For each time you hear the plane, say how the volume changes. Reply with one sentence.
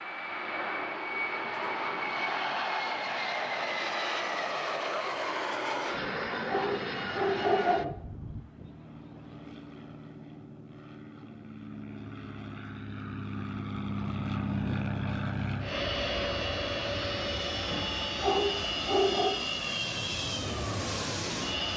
You can hear the plane from 0.0 to 21.7 s, getting quieter then louder.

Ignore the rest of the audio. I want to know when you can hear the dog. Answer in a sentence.
The dog can be heard from 6.0 to 7.9 s and from 17.6 to 19.3 s.